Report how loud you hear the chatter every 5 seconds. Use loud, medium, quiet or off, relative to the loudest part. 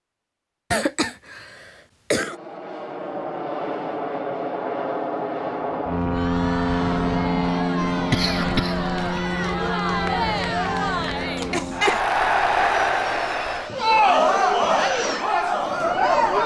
off, medium, loud, loud.